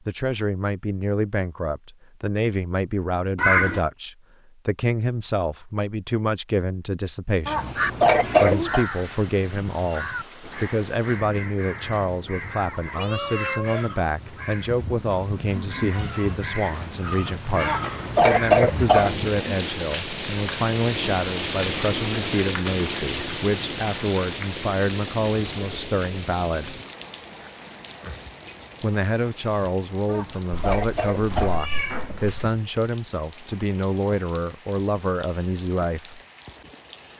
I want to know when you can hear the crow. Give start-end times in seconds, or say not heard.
7.5-19.4.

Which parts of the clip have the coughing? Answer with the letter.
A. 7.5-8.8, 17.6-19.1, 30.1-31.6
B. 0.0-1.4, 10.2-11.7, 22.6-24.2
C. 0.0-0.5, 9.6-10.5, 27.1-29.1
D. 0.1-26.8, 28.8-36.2
A.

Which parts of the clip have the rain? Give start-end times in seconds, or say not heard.
8.7-37.1.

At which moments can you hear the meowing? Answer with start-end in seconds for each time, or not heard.
3.4-3.8, 12.9-13.8, 30.5-32.5.